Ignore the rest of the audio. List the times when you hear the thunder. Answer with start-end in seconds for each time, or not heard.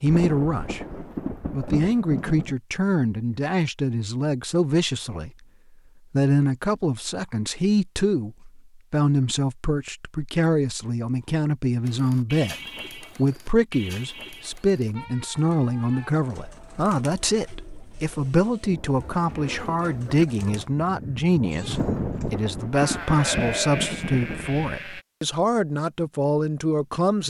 0.1-2.5, 21.7-24.9.